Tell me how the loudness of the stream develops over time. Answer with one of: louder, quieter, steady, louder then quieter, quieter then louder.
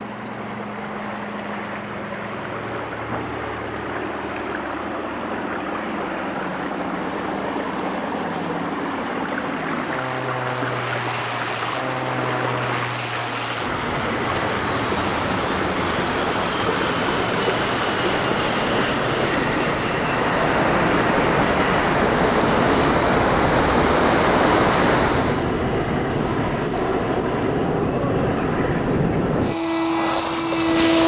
louder.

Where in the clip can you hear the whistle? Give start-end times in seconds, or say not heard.
not heard.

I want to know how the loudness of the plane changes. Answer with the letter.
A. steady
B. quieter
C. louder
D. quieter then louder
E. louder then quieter
C.